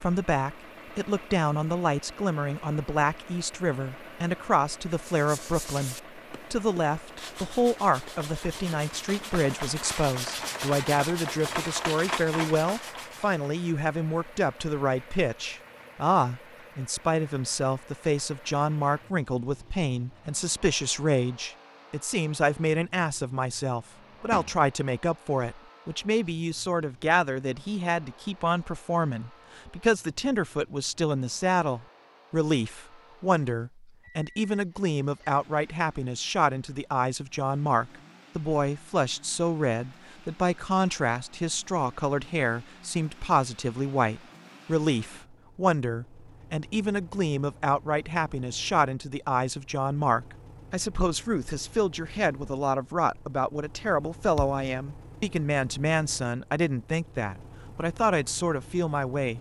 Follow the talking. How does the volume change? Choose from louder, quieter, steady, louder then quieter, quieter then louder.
steady.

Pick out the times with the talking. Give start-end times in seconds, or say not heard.
0.0-59.3.